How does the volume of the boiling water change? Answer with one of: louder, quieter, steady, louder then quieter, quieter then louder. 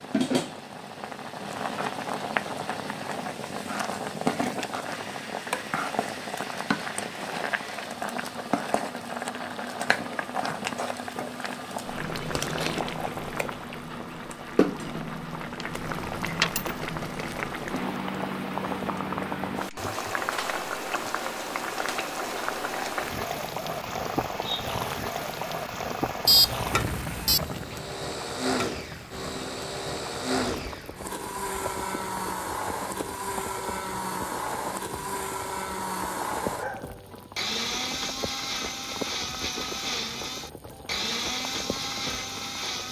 quieter.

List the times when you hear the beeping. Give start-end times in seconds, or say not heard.
26.2-27.4.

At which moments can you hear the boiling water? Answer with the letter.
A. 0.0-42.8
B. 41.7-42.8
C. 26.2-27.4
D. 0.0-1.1
A.